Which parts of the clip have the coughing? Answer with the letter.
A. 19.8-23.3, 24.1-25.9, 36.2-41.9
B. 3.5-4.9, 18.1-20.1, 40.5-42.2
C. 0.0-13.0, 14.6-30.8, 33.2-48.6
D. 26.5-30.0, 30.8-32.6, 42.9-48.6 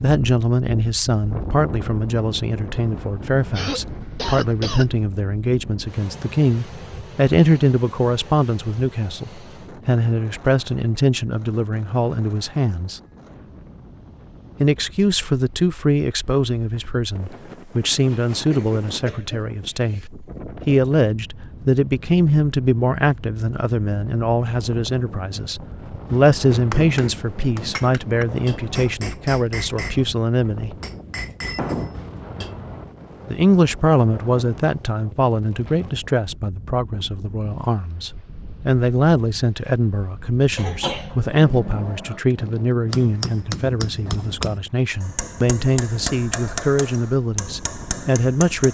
B.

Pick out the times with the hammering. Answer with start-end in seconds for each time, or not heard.
26.5-30.0, 30.8-32.6, 42.9-48.6.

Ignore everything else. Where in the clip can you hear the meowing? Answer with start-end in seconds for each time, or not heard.
not heard.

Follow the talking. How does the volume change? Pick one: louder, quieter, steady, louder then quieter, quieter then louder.
steady.